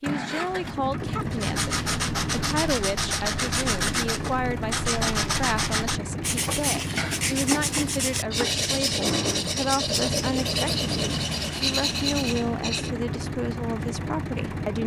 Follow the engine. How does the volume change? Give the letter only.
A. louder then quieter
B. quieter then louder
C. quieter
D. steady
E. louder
D.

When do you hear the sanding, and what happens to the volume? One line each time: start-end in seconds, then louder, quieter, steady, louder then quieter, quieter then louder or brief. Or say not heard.
1.3-12.9 steady.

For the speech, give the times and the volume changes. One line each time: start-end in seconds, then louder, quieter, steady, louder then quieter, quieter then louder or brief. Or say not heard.
0.0-14.8 steady.